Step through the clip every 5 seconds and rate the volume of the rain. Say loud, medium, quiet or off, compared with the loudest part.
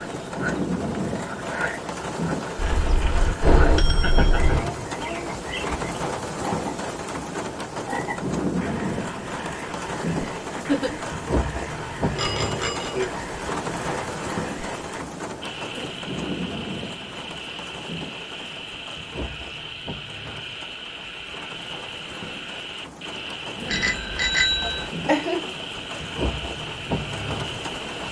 loud, loud, loud, medium, medium, loud.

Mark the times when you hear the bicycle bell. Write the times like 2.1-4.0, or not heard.
2.5-4.6, 12.2-13.1, 23.6-24.9.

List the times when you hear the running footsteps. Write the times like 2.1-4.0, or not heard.
not heard.